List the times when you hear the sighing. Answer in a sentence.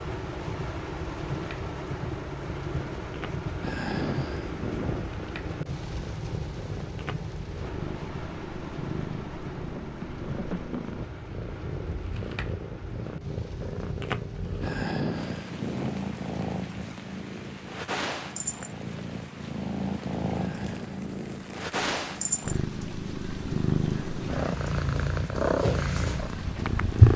The sighing can be heard from 3.6 to 5.1 s, from 14.6 to 15.9 s and from 20.4 to 21.0 s.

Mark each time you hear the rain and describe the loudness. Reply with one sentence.
You can hear the rain from 0.0 to 27.1 s, getting quieter.